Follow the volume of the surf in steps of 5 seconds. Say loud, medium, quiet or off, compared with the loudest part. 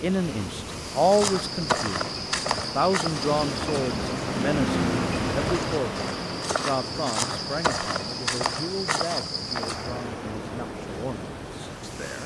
loud, loud, medium.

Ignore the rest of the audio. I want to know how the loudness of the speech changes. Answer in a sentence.
The loudness of the speech goes down.